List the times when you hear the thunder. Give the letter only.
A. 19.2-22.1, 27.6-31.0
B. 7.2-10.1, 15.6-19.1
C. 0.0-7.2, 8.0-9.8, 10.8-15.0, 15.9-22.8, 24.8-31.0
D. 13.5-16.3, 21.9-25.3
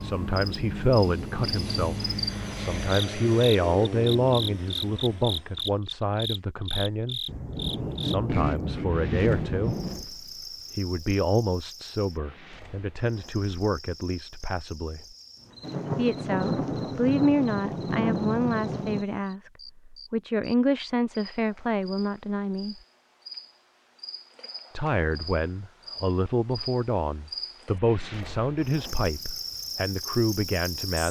B.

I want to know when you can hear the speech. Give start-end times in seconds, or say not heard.
0.0-7.2, 8.0-9.8, 10.8-15.0, 15.9-22.8, 24.8-31.0.